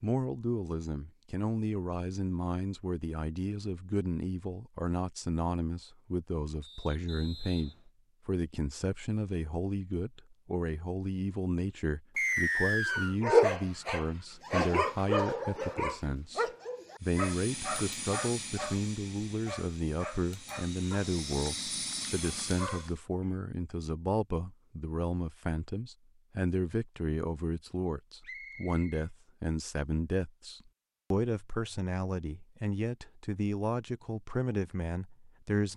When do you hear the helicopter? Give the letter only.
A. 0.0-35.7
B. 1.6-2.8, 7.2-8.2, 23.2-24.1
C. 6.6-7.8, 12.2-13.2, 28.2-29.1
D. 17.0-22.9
D.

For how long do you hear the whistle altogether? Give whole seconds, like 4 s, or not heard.
3 s.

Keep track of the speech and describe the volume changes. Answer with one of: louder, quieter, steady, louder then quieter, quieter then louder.
steady.